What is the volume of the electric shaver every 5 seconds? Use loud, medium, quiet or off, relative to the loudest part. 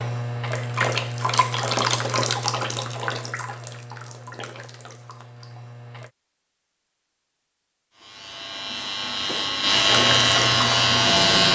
off, medium, loud.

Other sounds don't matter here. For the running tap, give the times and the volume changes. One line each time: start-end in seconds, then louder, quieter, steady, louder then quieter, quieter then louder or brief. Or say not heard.
0.0-6.1 quieter
9.8-11.4 brief.